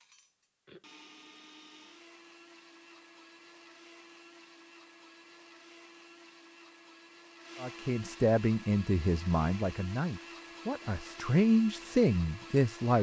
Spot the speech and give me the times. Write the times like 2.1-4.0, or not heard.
7.6-12.9.